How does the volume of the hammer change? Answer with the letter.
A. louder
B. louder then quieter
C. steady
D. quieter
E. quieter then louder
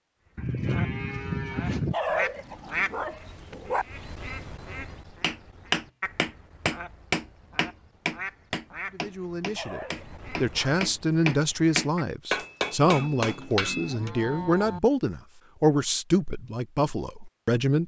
E.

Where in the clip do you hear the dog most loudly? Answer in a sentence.
The loudest moment of the dog is at 2 seconds.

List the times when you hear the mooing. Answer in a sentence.
You can hear the mooing from 0.3 to 1.9 s and from 12.8 to 14.8 s.